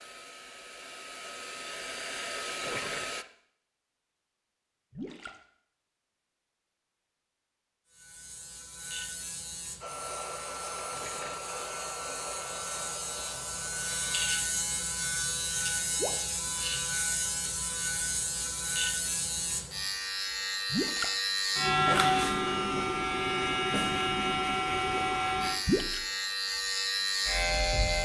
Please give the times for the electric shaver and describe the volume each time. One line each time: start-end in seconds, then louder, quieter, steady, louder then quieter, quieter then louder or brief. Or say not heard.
7.9-27.9 louder.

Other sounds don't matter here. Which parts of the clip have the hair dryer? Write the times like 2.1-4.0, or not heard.
0.0-3.2, 9.8-14.3.